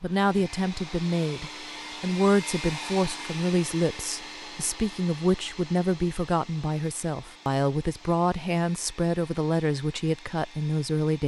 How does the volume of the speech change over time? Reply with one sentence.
The volume of the speech stays about the same.